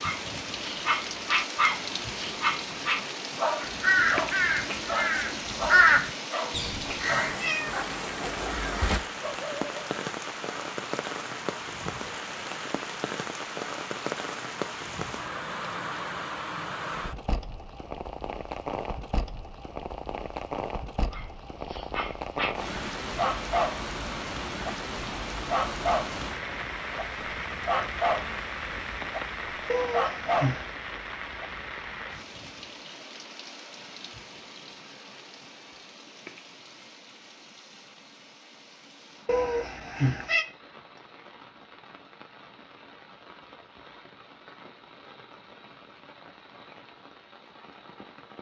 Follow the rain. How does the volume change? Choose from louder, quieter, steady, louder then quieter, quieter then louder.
quieter.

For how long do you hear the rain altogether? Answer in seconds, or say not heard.
48 s.